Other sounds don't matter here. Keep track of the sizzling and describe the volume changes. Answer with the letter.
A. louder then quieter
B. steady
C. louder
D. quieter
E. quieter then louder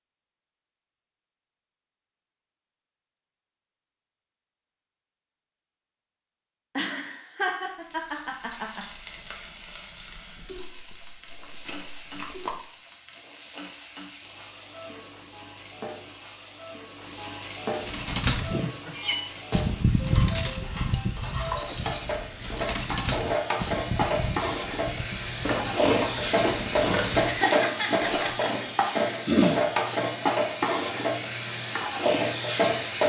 C.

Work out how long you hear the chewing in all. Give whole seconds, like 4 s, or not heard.
4 s.